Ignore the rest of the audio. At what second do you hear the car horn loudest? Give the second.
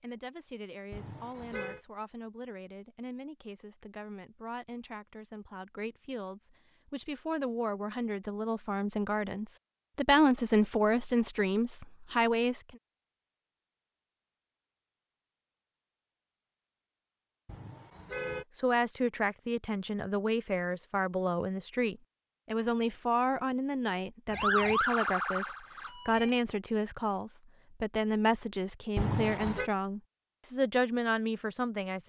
29 s.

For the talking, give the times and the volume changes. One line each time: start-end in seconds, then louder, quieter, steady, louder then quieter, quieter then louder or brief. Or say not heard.
0.0-12.8 louder
18.6-32.0 steady.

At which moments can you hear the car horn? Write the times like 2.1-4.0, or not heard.
0.9-1.8, 17.4-18.4, 28.9-29.7.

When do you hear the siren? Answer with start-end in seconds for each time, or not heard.
24.3-26.4.